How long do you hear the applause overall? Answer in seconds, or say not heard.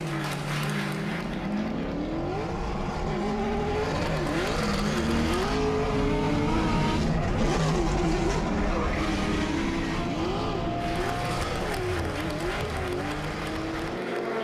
9 s.